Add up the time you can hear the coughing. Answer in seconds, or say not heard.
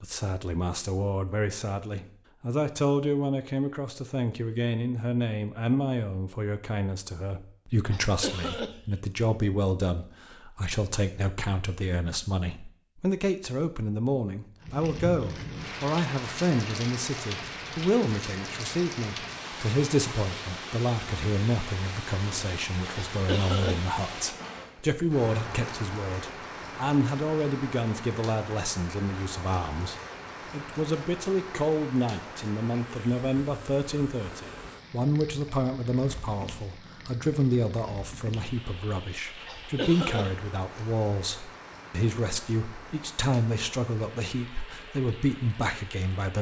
3 s.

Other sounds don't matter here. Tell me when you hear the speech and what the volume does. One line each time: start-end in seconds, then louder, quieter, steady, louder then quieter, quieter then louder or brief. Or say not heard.
0.0-46.3 steady.